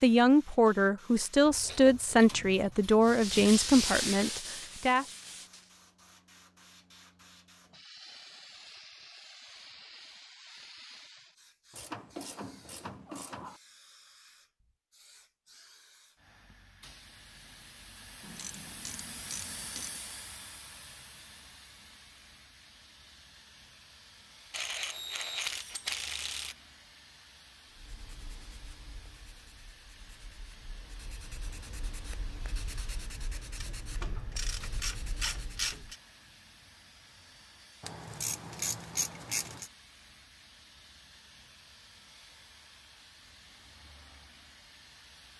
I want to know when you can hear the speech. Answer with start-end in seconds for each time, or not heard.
0.0-5.0.